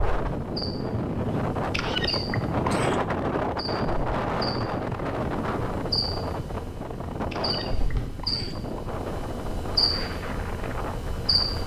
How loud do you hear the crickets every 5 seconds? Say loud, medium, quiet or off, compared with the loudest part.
medium, loud, loud.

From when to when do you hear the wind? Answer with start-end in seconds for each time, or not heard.
0.0-11.6.